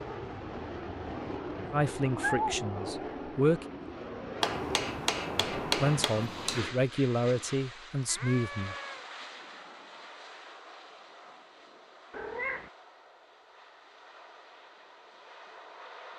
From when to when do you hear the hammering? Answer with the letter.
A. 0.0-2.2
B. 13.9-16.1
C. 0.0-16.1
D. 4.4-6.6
D.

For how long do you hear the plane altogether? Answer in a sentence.
You can hear the plane for 16 seconds altogether.